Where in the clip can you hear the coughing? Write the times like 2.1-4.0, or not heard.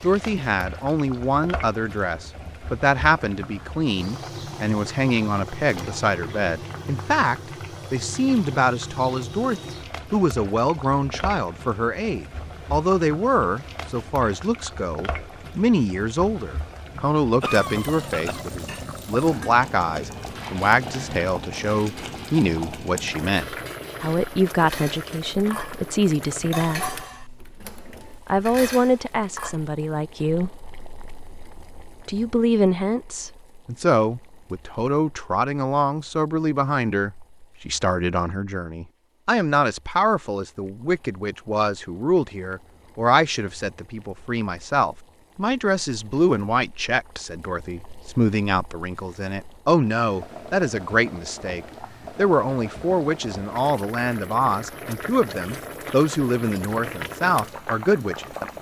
17.4-18.4.